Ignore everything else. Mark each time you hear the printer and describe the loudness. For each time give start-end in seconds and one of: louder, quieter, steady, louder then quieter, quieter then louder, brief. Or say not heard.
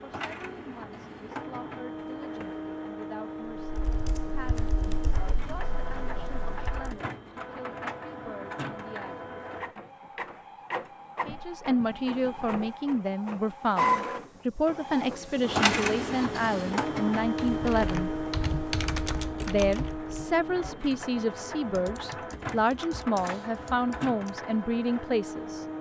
0.0-25.7 louder then quieter.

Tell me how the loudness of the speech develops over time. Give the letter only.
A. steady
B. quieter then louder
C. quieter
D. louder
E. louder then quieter
D.